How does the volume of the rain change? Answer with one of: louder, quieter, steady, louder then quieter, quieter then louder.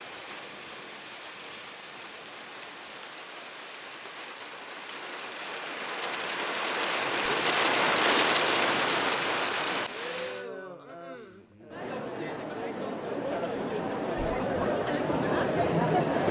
louder.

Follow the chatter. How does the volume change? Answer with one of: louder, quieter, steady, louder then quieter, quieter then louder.
louder.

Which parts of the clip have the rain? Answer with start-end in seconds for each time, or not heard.
0.0-10.5.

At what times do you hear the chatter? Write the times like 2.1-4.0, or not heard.
7.0-16.2.